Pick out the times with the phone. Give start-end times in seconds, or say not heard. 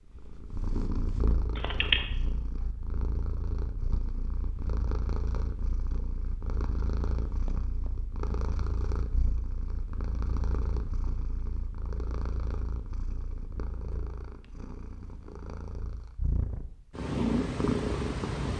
1.6-2.0.